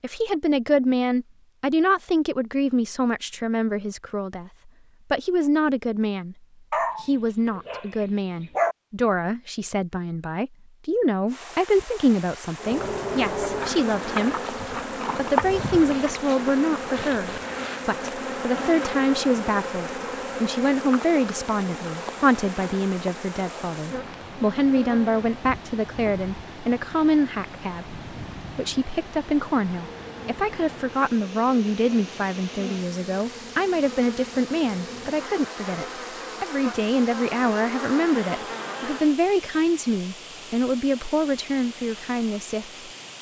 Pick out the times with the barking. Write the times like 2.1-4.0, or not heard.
6.7-8.8.